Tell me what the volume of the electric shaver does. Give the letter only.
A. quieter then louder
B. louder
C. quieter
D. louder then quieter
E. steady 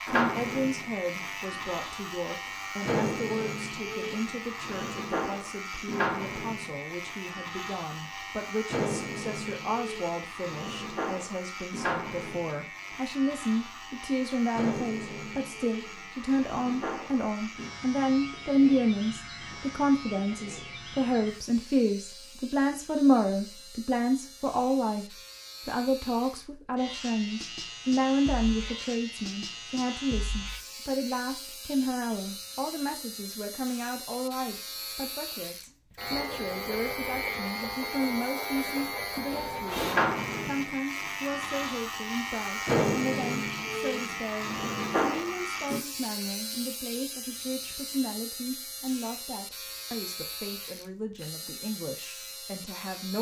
A.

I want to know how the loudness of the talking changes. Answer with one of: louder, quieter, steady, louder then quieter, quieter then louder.
louder then quieter.